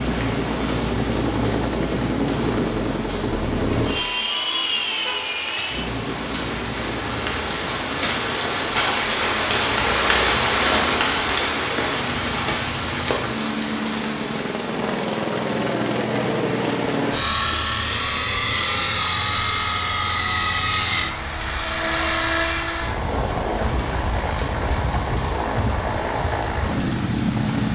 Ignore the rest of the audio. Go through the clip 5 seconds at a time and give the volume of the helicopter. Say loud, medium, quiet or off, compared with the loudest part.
loud, medium, medium, loud, loud, loud.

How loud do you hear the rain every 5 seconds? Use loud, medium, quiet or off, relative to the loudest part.
quiet, loud, loud, quiet, quiet, quiet.